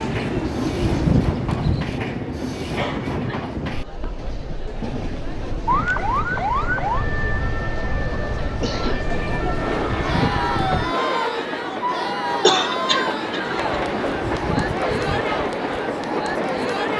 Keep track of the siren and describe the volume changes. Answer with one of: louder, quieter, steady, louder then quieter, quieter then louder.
quieter.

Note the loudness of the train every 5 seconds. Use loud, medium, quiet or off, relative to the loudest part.
loud, medium, loud, loud.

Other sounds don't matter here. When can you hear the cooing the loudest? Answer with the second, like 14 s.
1 s.